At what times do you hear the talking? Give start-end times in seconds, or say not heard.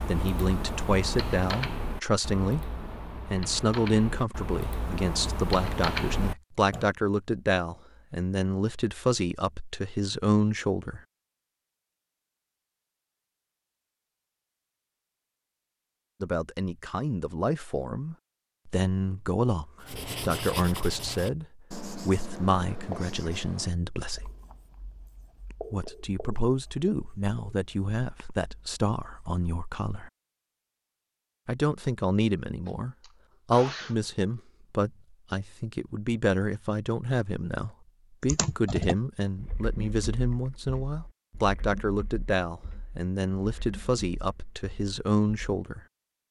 0.1-11.0, 16.2-24.3, 25.7-30.1, 31.4-45.8.